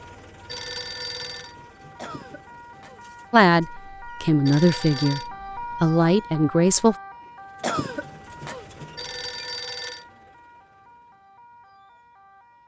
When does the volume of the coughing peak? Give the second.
8 s.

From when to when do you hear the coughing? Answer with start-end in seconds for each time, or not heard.
1.9-3.0, 7.6-8.7.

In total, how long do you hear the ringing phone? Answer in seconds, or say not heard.
3 s.